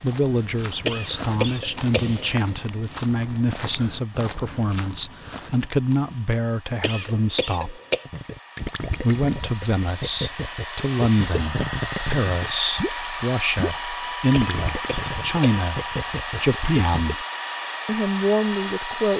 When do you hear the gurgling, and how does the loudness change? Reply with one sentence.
You can hear the gurgling from 8.1 to 17.1 s, at a steady volume.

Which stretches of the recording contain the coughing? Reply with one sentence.
You can hear the coughing from 0.8 to 2.4 s, from 6.8 to 8.1 s and from 14.3 to 15.6 s.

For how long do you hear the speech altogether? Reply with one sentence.
You can hear the speech for 17 seconds altogether.